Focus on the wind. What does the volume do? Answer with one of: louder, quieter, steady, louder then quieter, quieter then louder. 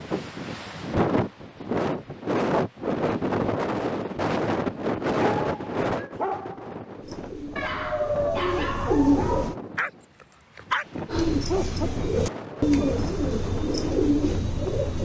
quieter.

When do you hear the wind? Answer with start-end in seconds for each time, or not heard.
0.0-14.9.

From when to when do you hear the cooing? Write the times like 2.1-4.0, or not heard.
7.0-9.6, 11.1-15.0.